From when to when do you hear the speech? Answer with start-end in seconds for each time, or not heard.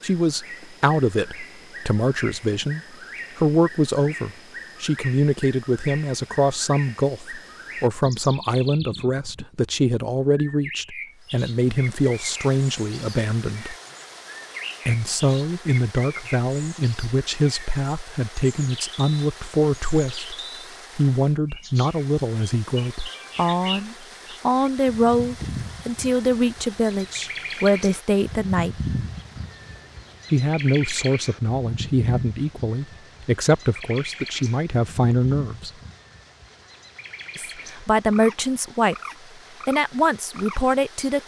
0.0-13.8, 14.8-20.4, 20.9-28.8, 30.3-35.7, 37.4-39.0, 39.6-41.2.